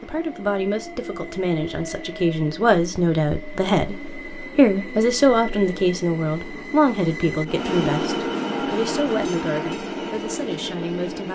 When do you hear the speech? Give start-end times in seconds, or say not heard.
0.0-11.2.